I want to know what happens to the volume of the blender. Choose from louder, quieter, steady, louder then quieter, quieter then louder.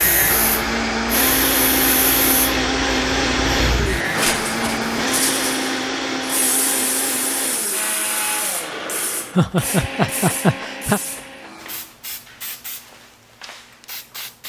quieter.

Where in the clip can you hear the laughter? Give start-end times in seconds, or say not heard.
9.3-11.0.